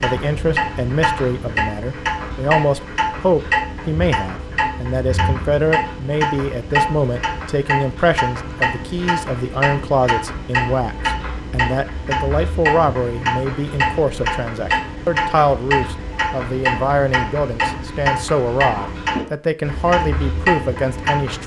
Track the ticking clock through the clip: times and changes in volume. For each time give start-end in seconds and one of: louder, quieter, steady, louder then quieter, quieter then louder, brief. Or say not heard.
0.0-21.4 steady.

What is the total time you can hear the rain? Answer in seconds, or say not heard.
not heard.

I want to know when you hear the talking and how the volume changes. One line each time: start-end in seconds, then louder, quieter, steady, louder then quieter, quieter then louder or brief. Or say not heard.
0.0-21.4 steady.